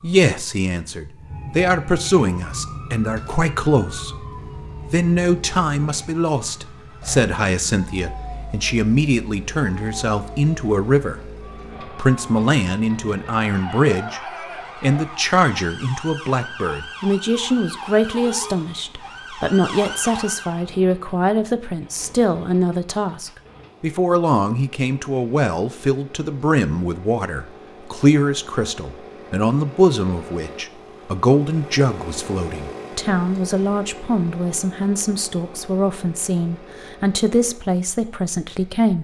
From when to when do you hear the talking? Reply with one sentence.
The talking can be heard from 0.0 to 4.2 s, from 4.9 to 11.2 s, from 11.8 to 14.2 s and from 14.8 to 38.9 s.